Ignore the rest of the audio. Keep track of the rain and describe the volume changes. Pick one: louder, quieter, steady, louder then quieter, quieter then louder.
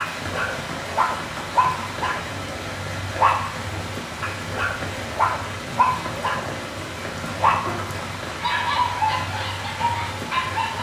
steady.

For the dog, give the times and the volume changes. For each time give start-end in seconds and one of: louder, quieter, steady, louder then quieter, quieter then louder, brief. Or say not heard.
0.0-10.7 steady.